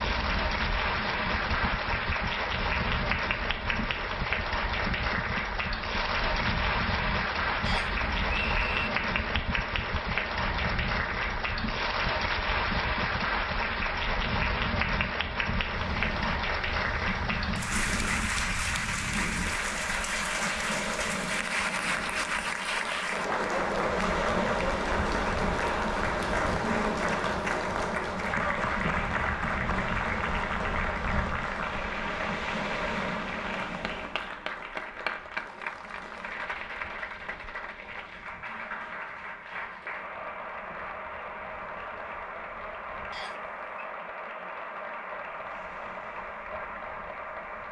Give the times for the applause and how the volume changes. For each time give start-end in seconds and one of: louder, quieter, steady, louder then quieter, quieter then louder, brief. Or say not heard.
0.0-47.6 quieter.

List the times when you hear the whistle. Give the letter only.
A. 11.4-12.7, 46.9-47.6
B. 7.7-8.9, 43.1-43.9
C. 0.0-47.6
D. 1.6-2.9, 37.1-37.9
B.